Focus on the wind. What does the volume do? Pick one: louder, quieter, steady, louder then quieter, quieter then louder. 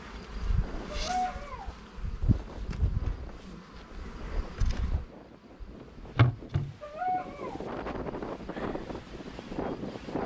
louder.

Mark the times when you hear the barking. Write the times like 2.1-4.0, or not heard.
0.9-1.7, 6.8-7.7.